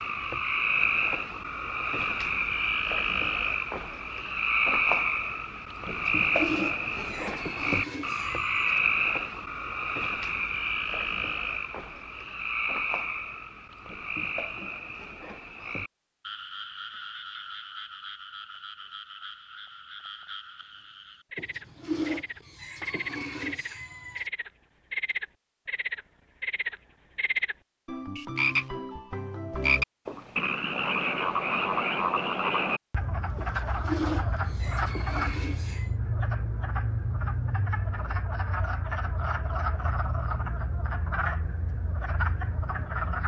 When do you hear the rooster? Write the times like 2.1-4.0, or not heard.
5.8-8.8, 21.4-24.3, 33.4-35.9.